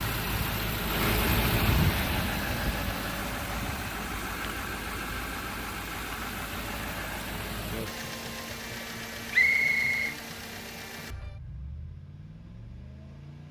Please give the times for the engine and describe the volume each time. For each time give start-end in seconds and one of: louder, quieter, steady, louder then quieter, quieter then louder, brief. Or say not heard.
0.0-13.4 quieter.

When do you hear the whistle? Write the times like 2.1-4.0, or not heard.
9.3-10.2.